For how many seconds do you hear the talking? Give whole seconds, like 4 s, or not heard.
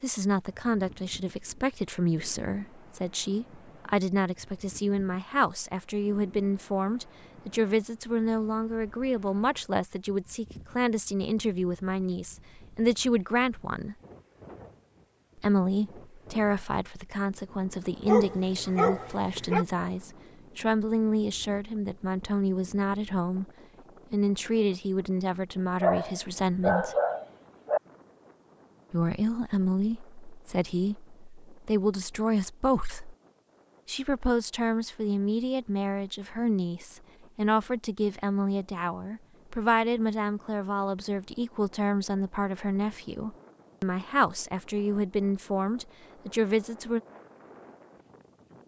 42 s.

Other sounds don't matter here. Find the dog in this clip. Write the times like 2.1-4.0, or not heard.
18.1-19.6, 25.8-27.8.